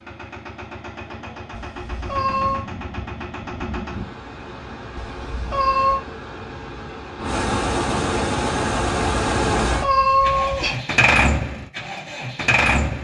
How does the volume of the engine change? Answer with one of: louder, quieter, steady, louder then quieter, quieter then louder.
louder.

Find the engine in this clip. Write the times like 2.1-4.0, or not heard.
0.0-12.9.